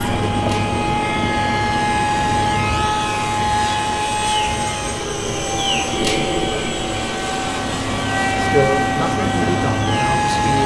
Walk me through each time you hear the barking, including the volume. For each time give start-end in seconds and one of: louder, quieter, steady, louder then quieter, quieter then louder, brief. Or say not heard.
not heard.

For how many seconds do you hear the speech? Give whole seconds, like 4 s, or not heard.
2 s.